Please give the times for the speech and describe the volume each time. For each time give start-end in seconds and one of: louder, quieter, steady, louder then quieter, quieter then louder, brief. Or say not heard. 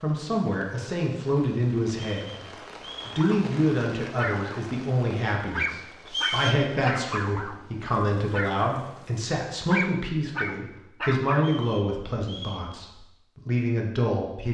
0.0-14.4 steady.